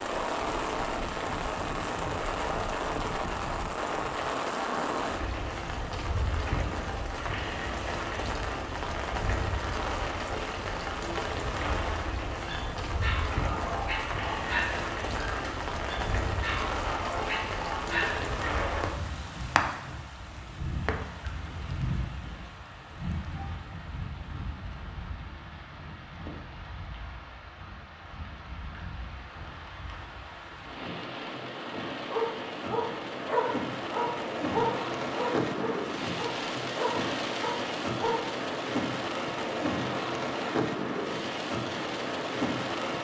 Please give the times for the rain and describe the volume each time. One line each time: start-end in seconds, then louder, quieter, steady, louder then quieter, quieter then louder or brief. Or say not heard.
0.0-42.9 quieter then louder.